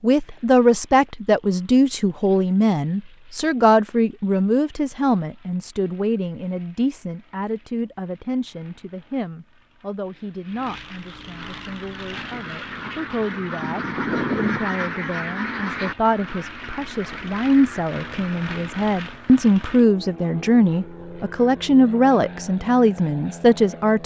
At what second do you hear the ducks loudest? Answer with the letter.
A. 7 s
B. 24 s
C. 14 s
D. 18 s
C.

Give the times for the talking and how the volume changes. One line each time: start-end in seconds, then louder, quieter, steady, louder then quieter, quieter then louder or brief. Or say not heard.
0.0-24.0 quieter then louder.